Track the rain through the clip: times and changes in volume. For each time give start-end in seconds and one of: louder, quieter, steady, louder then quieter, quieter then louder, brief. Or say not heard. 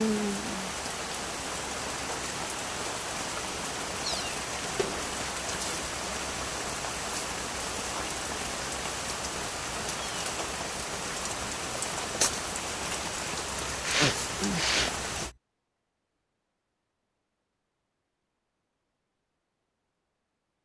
0.0-15.3 steady.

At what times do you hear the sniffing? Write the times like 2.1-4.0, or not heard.
13.8-15.3.